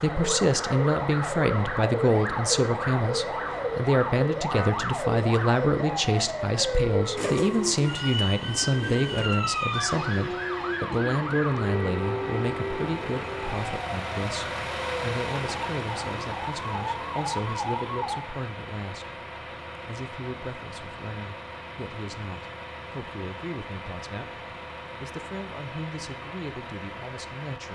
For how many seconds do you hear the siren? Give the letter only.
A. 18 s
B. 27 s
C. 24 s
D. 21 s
A.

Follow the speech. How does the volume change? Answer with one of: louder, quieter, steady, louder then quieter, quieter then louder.
quieter.